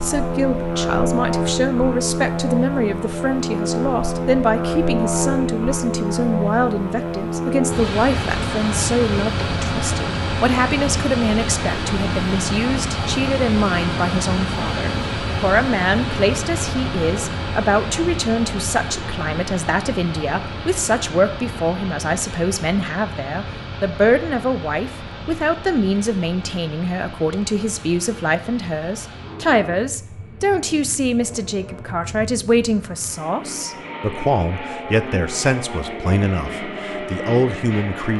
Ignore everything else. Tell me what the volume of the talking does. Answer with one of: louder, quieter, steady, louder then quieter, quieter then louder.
steady.